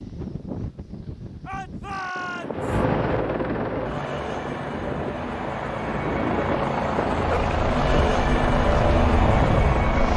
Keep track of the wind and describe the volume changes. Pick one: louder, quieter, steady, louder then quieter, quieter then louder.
louder.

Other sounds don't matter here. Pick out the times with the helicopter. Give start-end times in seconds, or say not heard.
2.5-10.1.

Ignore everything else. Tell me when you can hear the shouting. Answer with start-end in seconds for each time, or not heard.
1.4-2.8.